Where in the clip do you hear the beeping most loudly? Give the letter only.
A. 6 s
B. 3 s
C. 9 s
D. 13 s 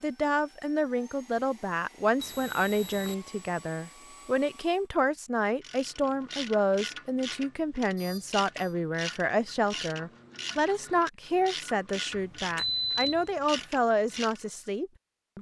D.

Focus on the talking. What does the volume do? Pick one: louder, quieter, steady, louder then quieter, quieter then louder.
steady.